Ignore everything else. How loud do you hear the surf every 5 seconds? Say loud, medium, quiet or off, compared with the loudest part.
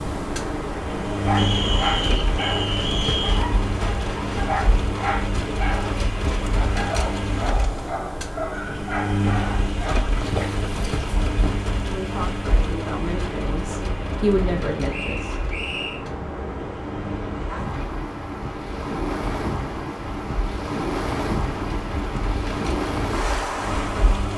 loud, medium, medium, loud, loud.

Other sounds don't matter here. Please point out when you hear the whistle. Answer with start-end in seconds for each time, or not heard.
1.4-3.5, 14.9-16.0.